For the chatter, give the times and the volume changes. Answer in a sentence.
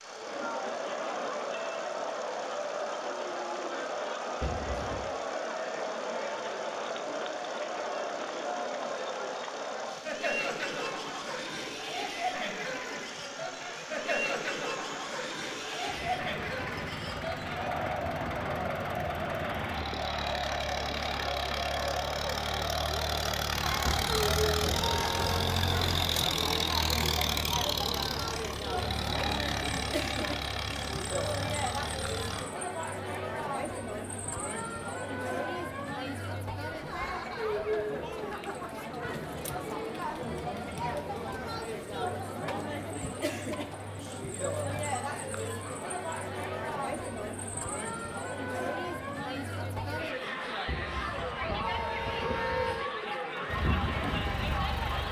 You can hear the chatter from 0.0 to 55.0 s, at a steady volume.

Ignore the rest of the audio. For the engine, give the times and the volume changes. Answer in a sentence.
The engine can be heard from 0.0 to 32.5 s, getting louder; and briefly from 53.5 to 55.0 s.